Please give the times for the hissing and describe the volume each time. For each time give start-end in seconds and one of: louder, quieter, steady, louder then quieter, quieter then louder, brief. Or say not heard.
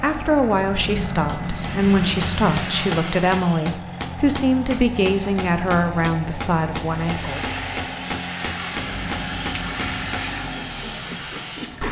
1.4-3.8 brief
6.8-11.8 steady.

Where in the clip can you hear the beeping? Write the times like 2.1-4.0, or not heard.
0.7-2.6, 8.7-10.2.